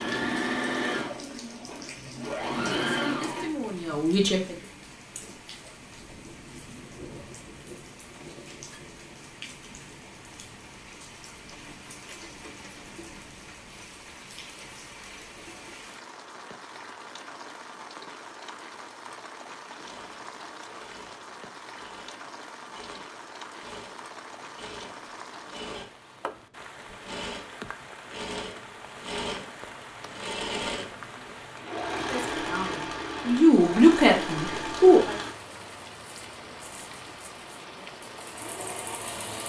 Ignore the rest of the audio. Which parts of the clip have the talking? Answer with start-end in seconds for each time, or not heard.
2.9-4.7, 32.0-35.1.